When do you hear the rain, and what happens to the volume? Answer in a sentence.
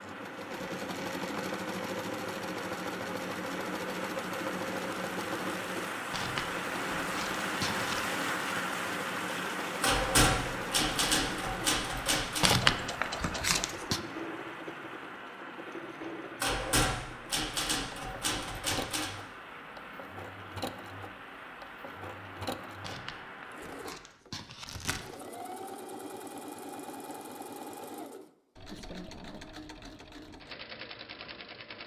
The rain can be heard from 0.0 to 24.2 s, getting louder then quieter.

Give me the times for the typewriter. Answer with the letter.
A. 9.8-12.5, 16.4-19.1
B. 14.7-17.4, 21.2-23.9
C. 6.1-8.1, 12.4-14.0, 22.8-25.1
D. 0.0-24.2
A.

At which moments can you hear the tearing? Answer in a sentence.
You can hear the tearing from 6.1 to 8.1 s, from 12.4 to 14.0 s and from 22.8 to 25.1 s.